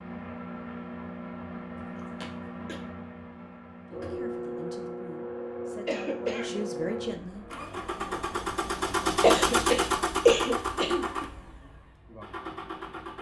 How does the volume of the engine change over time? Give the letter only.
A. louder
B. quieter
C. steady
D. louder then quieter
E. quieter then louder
D.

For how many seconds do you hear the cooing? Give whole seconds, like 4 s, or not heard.
not heard.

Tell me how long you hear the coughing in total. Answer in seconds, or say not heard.
4 s.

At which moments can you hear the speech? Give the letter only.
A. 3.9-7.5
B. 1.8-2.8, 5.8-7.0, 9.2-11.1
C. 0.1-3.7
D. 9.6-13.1
A.